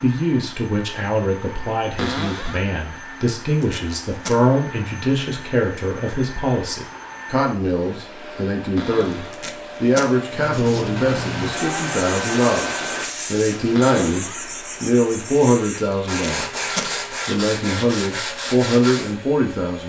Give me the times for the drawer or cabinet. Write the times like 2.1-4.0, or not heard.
1.9-2.6, 8.8-9.4, 13.8-14.4.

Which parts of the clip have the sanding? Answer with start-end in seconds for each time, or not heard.
10.3-19.1.